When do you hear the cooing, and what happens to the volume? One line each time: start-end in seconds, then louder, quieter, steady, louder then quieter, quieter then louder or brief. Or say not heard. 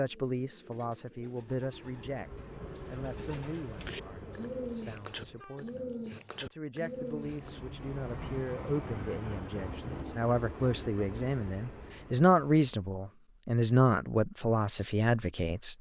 0.0-7.6 louder.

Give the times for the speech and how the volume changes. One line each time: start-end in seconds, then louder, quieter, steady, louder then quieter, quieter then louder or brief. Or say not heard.
0.0-15.7 quieter then louder.